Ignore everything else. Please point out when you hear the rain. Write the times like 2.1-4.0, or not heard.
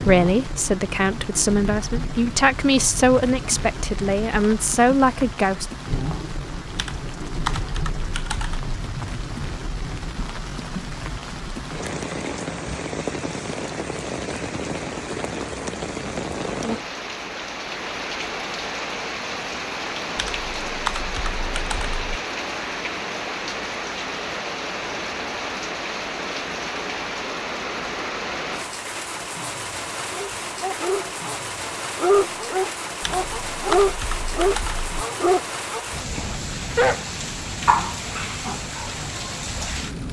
0.0-40.0.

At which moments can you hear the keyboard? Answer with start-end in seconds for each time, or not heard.
6.8-8.7, 20.1-22.2, 33.0-35.0.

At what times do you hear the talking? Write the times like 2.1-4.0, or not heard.
0.0-5.7.